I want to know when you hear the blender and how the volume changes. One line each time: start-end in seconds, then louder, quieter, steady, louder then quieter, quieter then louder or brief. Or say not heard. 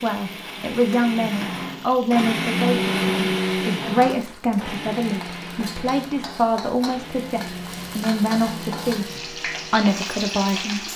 0.0-10.9 louder then quieter.